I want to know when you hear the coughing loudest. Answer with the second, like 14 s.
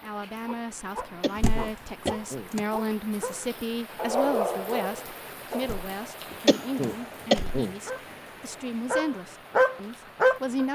7 s.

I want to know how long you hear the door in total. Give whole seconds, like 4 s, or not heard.
3 s.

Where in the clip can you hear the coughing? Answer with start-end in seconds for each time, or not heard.
1.2-2.5, 6.5-7.8.